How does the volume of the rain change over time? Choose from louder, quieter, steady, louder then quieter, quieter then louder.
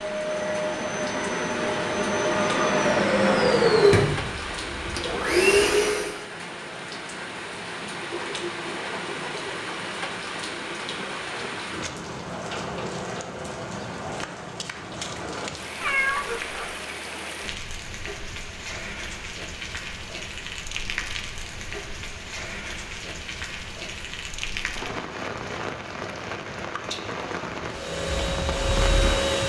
steady.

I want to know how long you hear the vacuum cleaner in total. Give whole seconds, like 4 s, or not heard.
8 s.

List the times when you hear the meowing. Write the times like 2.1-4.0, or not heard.
15.8-16.8.